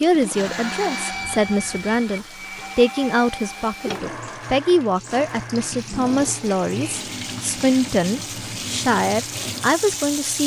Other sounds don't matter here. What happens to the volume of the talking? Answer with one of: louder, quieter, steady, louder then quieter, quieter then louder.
steady.